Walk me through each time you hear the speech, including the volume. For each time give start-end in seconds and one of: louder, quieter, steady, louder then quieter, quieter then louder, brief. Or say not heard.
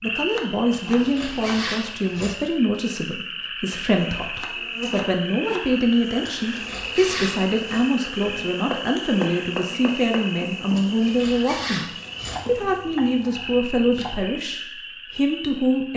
0.0-15.9 steady.